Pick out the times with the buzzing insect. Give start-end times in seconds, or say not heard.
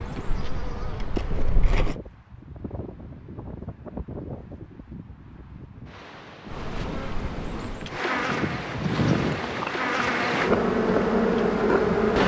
0.0-1.9, 6.5-12.2.